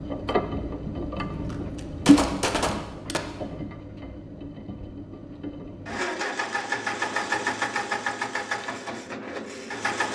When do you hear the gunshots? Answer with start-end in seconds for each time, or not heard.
1.1-3.2.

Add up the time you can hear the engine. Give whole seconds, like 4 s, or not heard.
10 s.